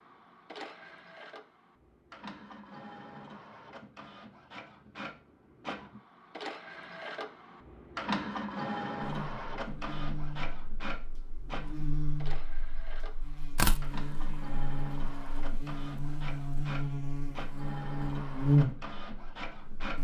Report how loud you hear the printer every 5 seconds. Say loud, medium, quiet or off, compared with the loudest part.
medium, loud, medium, medium.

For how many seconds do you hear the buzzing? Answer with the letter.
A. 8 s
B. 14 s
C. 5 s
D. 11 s
D.